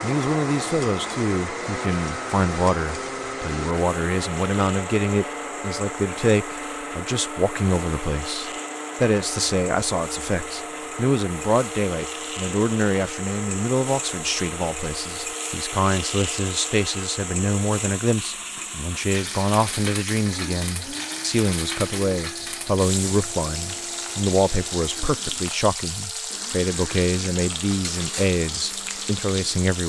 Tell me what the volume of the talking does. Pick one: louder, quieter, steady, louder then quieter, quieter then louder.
steady.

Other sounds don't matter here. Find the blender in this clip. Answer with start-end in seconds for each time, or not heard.
0.0-29.7.